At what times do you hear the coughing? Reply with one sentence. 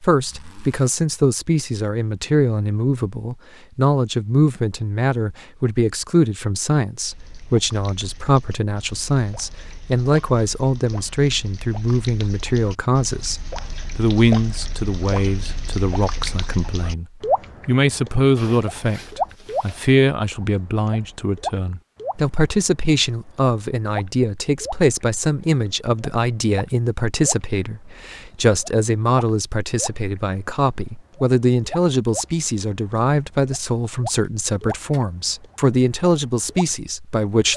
The coughing can't be heard in this clip.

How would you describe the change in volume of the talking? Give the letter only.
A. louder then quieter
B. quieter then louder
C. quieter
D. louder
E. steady
E.